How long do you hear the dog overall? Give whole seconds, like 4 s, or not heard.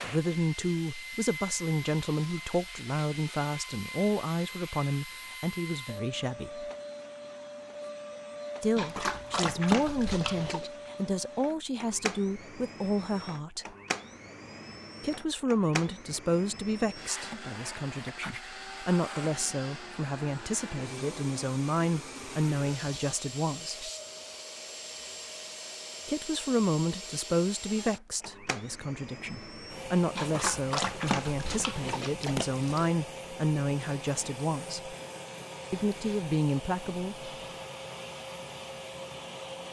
5 s.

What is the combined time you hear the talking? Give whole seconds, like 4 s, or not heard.
31 s.